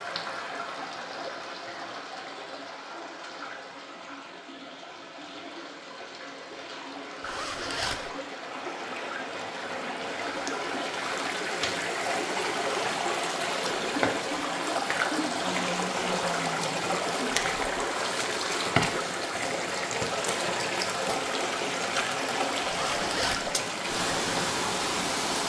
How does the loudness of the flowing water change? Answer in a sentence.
The loudness of the flowing water goes up.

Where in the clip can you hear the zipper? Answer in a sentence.
You can hear the zipper from 7.2 to 8.1 s and from 22.6 to 23.5 s.